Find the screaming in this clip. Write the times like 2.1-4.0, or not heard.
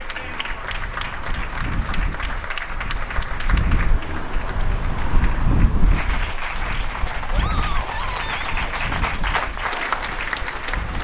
7.3-8.5.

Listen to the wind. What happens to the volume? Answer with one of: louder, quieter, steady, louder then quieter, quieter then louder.
louder then quieter.